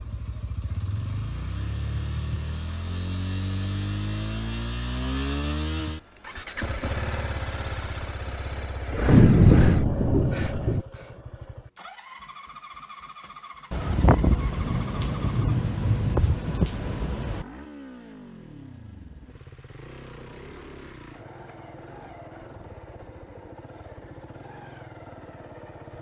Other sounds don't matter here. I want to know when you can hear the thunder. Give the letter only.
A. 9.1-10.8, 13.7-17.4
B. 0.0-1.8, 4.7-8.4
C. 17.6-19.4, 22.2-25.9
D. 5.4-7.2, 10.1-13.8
A.